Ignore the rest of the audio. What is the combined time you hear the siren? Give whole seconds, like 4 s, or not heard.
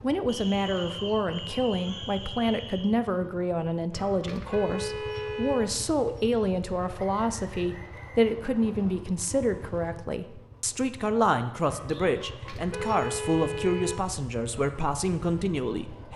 not heard.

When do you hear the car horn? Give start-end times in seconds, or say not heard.
4.2-5.7, 12.4-14.2.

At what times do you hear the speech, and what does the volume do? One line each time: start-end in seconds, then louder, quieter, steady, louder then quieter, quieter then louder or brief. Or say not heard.
0.0-16.1 steady.